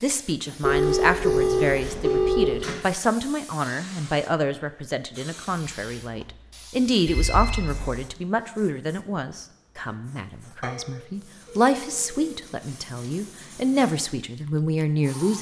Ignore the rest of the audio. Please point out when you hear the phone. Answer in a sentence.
You can hear the phone from 0.6 to 2.6 s, from 7.0 to 8.1 s and from 10.6 to 12.4 s.